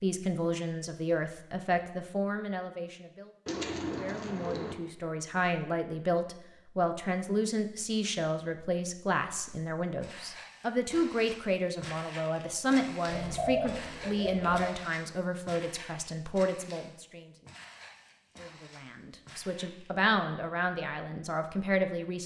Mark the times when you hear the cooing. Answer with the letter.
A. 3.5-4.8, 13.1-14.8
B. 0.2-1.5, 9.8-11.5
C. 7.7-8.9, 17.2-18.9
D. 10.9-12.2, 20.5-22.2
A.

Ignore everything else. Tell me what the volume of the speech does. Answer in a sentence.
The volume of the speech stays about the same.